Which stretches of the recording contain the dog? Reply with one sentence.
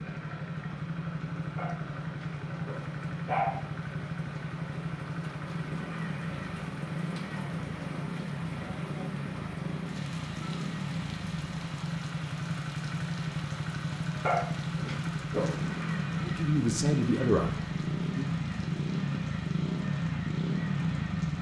The dog can be heard from 1.6 to 3.5 s and from 14.2 to 15.8 s.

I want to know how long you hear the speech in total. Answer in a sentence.
The speech can be heard for 2 seconds in total.